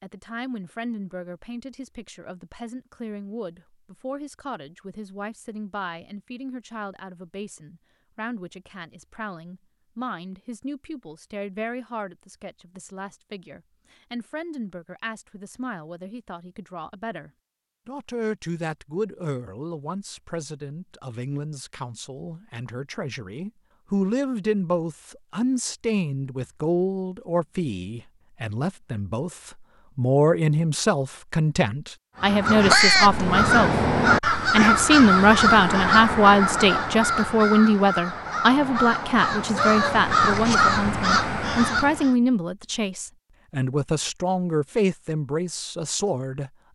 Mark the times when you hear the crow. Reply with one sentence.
You can hear the crow from 32.2 to 42.1 s.